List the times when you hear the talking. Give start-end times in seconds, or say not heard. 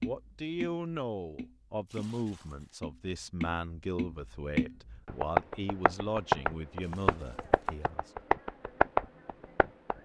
0.0-8.1.